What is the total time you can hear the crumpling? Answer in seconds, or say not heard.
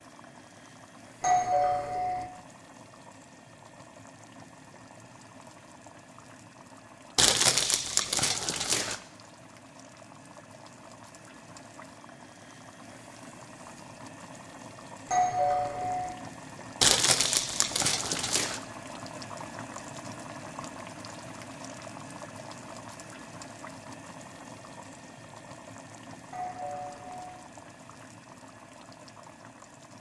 4 s.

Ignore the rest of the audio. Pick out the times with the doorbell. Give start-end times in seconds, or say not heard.
1.2-2.2, 15.1-16.1, 26.3-27.4.